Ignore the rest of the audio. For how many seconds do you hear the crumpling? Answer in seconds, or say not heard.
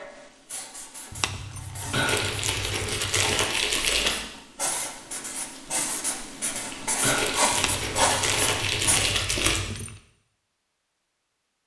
5 s.